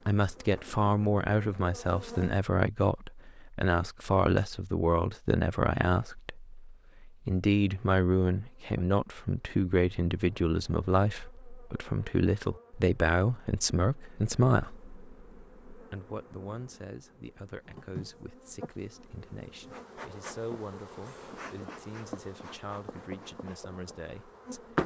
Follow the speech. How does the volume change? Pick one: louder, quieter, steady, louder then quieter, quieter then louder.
quieter.